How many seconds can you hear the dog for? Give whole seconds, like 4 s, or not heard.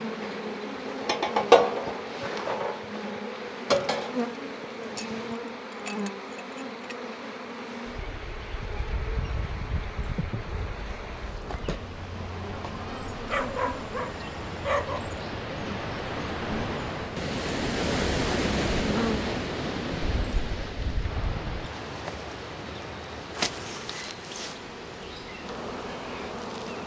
2 s.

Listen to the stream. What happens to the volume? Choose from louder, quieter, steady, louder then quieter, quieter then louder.
louder then quieter.